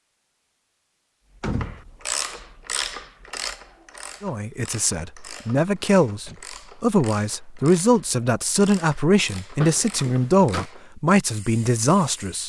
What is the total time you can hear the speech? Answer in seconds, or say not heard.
8 s.